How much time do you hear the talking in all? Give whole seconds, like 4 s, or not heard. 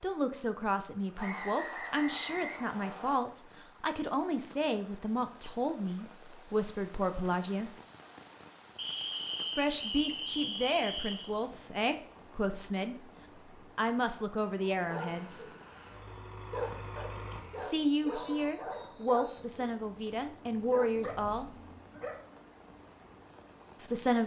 17 s.